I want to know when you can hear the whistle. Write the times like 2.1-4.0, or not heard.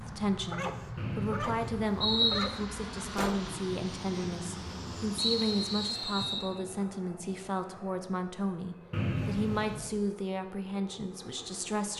0.9-2.5, 5.2-6.5, 8.9-9.9.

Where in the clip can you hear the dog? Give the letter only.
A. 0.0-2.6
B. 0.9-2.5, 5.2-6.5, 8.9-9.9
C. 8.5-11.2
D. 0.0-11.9
A.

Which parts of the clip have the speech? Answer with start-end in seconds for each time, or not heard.
0.0-11.9.